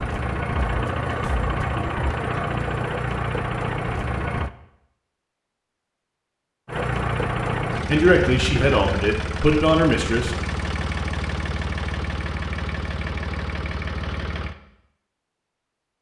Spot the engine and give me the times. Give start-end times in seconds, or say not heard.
0.0-4.5, 6.7-14.6.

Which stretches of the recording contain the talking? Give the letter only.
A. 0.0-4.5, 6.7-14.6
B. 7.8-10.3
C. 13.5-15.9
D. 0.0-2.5
B.